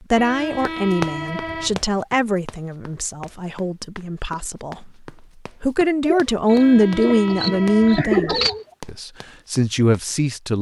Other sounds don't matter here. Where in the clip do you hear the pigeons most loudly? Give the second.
8 s.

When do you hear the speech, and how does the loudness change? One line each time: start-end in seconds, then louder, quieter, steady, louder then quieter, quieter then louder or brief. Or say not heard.
0.1-4.9 quieter
5.6-10.5 quieter then louder.